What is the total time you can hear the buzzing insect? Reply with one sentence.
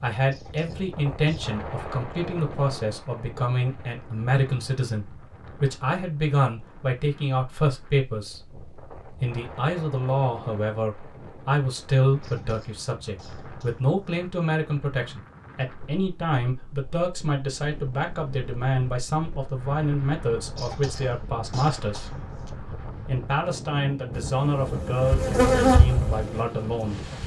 You can hear the buzzing insect for 3 seconds altogether.